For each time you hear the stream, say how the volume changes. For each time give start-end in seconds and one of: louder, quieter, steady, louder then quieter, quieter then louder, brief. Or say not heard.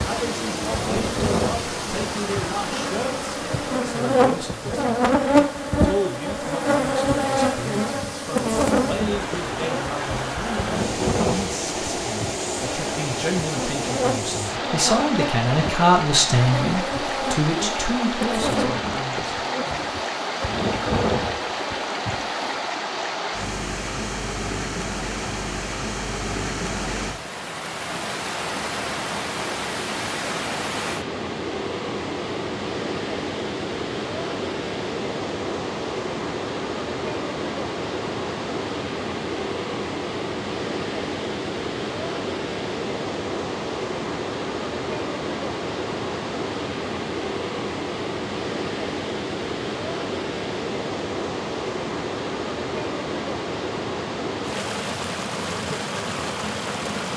0.0-57.1 steady.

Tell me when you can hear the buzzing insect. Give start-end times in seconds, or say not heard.
0.0-22.6.